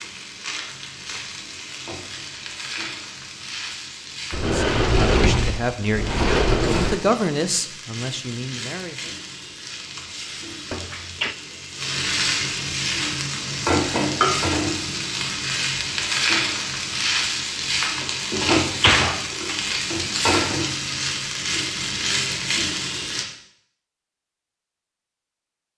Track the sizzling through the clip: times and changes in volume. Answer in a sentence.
You can hear the sizzling from 0.0 to 23.2 s, getting louder.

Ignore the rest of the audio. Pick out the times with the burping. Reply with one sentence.
The burping can't be heard in this clip.